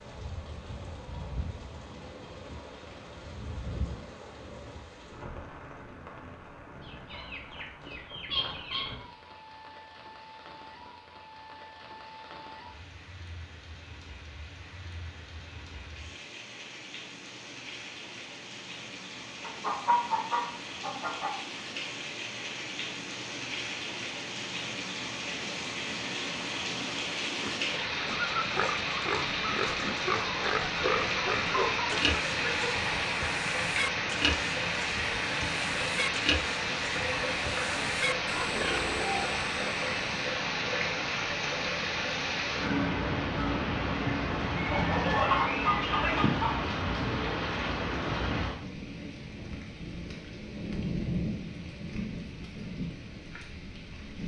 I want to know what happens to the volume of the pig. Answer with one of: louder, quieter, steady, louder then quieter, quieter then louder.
steady.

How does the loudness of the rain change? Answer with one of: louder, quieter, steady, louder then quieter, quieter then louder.
louder.